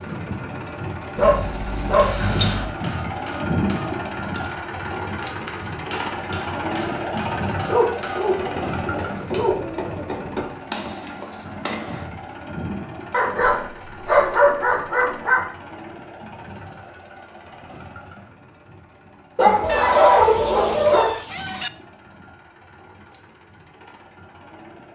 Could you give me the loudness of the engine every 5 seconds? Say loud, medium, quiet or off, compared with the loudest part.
loud, loud, medium, quiet, quiet.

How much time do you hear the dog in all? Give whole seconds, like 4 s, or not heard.
8 s.